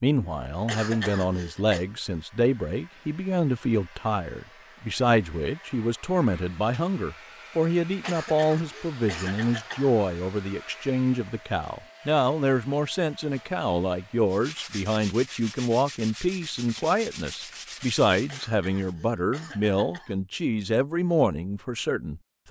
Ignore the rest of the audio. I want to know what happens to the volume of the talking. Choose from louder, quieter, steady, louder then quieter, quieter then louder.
steady.